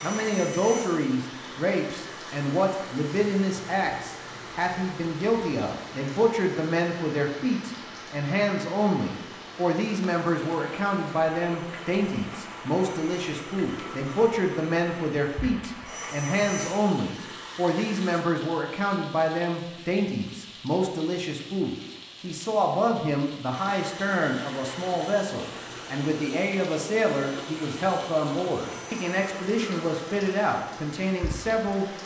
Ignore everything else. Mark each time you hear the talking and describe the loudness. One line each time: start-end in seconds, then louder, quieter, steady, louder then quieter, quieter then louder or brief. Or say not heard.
0.0-31.9 steady.